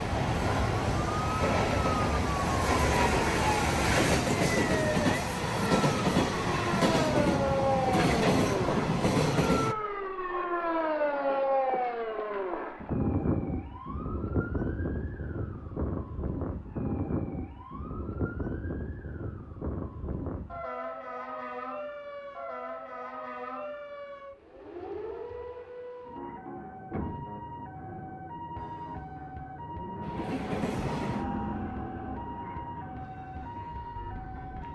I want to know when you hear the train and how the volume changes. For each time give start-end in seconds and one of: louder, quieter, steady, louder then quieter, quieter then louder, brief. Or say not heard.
0.0-9.8 steady
30.0-34.6 quieter.